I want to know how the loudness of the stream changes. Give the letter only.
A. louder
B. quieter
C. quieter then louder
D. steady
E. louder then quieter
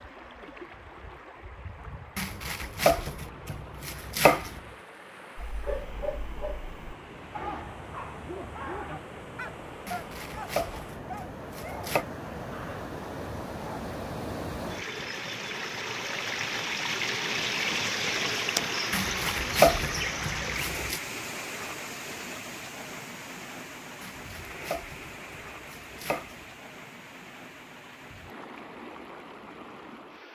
E.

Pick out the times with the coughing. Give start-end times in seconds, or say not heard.
not heard.